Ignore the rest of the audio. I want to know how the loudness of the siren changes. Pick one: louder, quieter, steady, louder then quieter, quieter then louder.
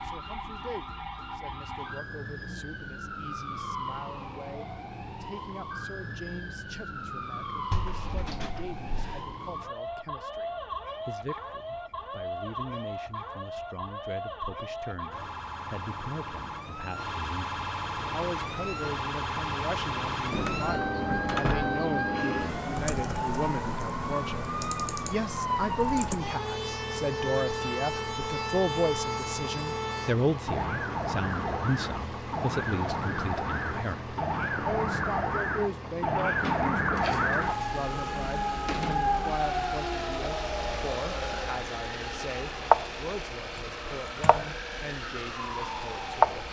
louder.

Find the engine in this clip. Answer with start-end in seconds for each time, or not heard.
17.9-46.4.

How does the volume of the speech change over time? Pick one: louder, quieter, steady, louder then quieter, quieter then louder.
louder then quieter.